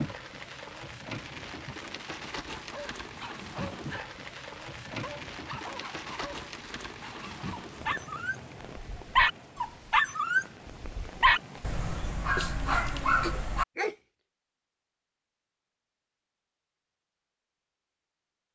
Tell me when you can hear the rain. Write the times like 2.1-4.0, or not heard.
0.0-11.8.